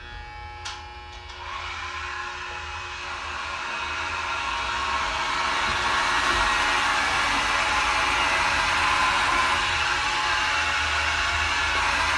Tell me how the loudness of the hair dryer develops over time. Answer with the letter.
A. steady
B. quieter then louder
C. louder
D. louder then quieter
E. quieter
C.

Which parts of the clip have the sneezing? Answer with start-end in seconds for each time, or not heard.
not heard.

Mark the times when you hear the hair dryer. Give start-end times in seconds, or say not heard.
0.0-12.1.